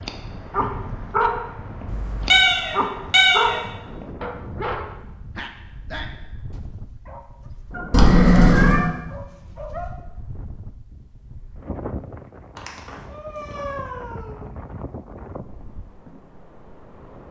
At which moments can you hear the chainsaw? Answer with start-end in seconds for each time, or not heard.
not heard.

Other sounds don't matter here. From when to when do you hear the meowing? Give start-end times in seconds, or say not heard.
1.9-3.6, 7.9-8.8, 12.6-14.4.